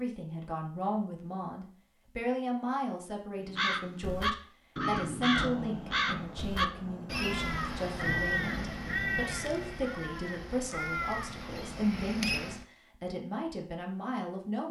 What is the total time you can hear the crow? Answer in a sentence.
You can hear the crow for 9 seconds altogether.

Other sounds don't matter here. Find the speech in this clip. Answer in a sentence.
The speech can be heard from 0.0 to 14.6 s.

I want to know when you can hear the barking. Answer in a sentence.
You can't hear the barking here.